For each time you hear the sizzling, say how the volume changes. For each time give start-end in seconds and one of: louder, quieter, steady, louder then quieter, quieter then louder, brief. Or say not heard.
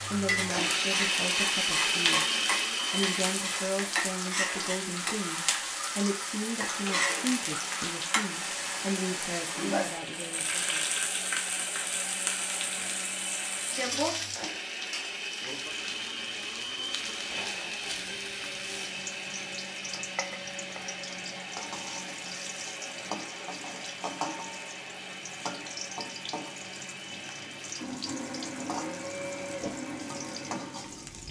0.0-31.2 quieter.